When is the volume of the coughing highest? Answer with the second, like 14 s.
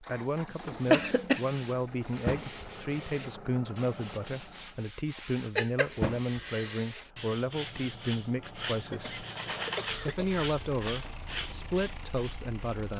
1 s.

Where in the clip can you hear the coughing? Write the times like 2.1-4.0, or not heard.
0.5-1.4, 5.5-6.8, 8.9-11.1.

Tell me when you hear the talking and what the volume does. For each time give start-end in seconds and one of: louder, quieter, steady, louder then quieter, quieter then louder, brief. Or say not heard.
0.0-9.2 steady
10.1-12.9 brief.